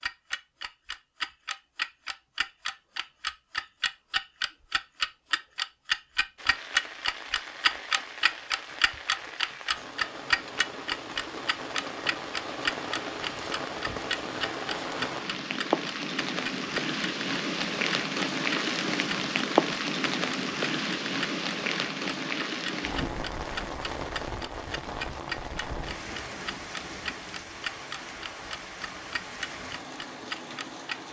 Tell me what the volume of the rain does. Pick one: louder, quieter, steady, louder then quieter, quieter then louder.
louder then quieter.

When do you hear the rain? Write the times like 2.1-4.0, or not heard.
6.3-31.0.